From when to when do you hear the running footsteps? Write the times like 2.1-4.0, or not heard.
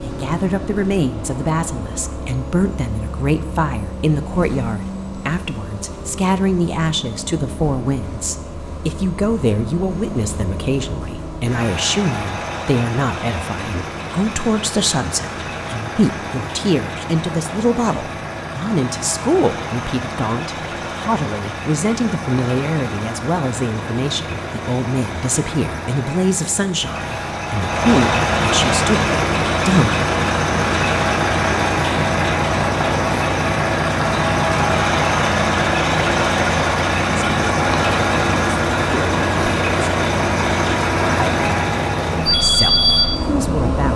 not heard.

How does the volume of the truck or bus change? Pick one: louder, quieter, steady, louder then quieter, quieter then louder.
louder.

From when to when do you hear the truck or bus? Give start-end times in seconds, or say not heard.
0.0-43.9.